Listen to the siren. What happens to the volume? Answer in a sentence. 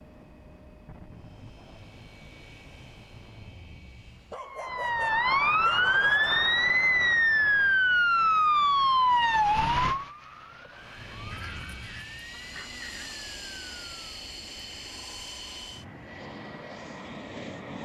The loudness of the siren goes down.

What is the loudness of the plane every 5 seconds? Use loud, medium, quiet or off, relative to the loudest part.
medium, off, loud, loud.